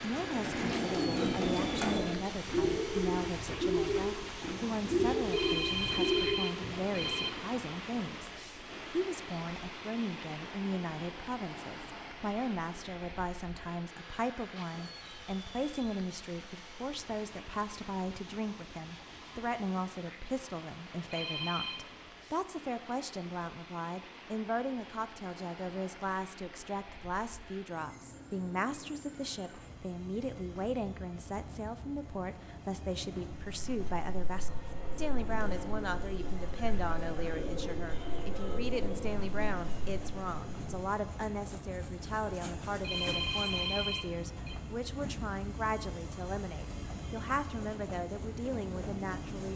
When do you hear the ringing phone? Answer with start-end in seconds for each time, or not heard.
5.3-7.3, 21.1-21.9, 42.8-44.5.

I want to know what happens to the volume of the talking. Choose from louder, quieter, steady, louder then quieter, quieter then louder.
steady.